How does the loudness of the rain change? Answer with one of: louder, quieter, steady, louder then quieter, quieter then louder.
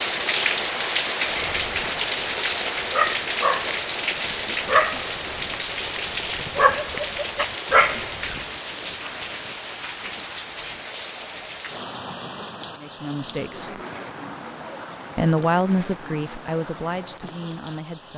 quieter.